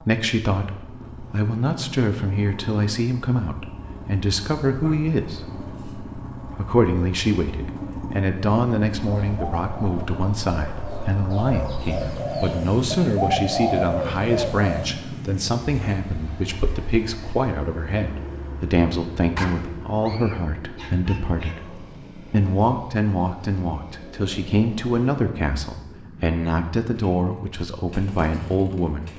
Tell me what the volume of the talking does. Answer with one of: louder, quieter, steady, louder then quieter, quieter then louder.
steady.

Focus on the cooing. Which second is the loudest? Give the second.
14 s.